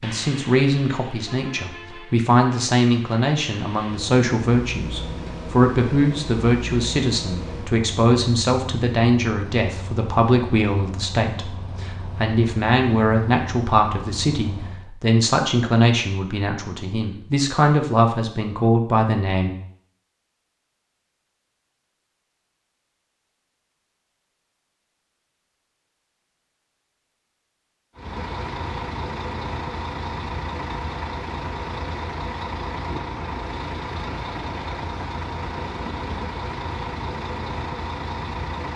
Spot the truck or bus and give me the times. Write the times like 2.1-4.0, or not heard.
0.0-14.9, 27.9-38.7.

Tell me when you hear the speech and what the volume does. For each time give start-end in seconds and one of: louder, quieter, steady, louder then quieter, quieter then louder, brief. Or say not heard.
0.0-19.5 steady.